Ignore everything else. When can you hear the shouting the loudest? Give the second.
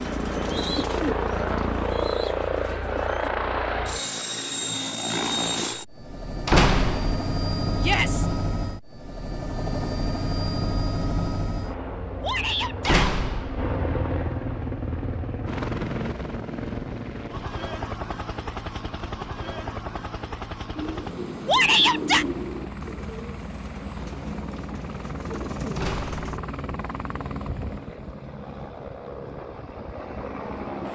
22 s.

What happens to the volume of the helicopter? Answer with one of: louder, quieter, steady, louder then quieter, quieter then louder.
quieter.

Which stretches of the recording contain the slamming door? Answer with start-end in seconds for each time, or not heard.
6.5-7.3, 12.8-13.8, 25.8-26.2.